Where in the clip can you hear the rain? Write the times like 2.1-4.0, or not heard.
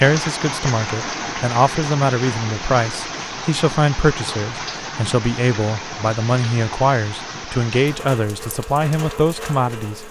0.0-10.0.